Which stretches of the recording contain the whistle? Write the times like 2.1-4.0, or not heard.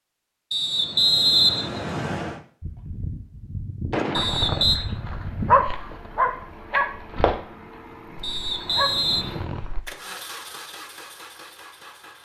0.5-2.4, 4.1-4.8, 8.2-9.2.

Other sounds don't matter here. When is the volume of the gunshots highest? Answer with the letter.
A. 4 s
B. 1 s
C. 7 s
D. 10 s
A.